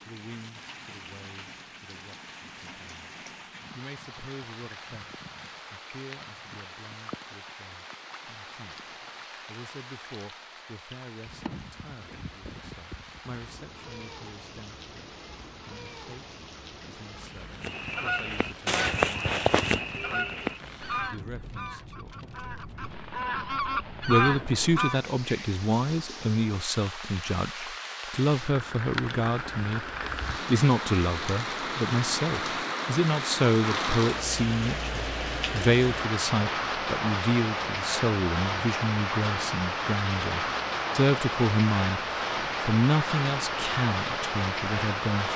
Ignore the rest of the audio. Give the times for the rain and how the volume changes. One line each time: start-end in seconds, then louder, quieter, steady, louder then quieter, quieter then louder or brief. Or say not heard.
0.0-45.3 louder.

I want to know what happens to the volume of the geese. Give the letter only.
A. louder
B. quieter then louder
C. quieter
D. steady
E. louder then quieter
B.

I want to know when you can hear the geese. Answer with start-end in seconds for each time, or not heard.
17.6-25.0.